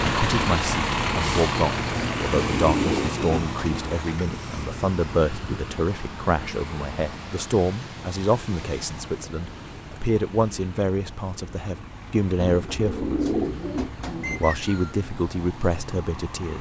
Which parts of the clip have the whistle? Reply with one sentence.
The whistle can be heard from 14.2 to 15.1 s.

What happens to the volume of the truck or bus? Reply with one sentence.
The loudness of the truck or bus goes down.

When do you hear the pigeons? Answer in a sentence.
The pigeons can be heard from 1.9 to 4.0 s and from 12.4 to 14.4 s.